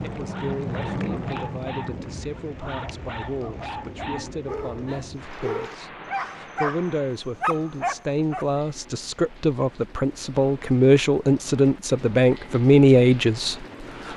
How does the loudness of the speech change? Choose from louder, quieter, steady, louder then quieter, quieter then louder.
louder.